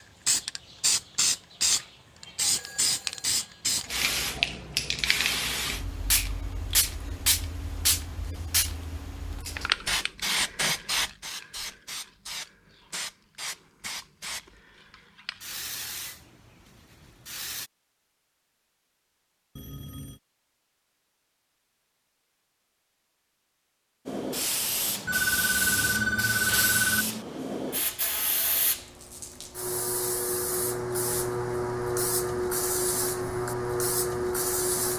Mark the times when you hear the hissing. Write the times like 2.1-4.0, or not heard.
0.2-17.7, 24.1-34.9.